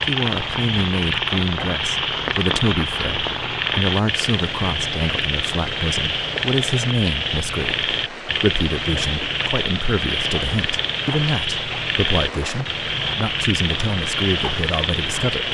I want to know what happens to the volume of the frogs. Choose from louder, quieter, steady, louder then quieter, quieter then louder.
steady.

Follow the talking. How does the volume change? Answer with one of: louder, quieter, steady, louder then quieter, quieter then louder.
steady.